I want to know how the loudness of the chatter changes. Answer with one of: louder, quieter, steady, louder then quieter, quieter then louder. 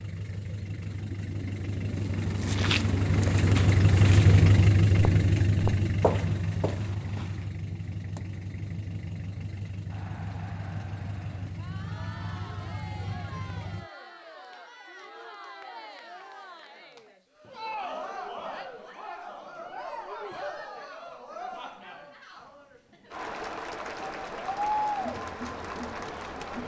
louder.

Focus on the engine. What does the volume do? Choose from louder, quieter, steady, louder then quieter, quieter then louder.
louder then quieter.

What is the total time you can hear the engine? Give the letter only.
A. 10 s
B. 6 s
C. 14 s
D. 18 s
C.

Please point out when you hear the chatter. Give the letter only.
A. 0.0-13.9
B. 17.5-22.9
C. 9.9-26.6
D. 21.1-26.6
C.